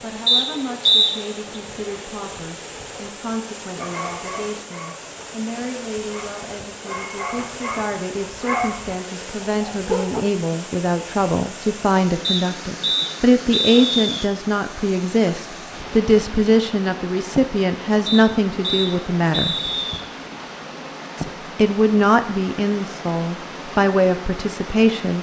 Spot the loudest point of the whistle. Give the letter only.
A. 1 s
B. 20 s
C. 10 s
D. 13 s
A.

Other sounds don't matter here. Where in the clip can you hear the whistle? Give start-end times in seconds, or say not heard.
0.2-1.1, 12.2-14.2, 18.1-20.1.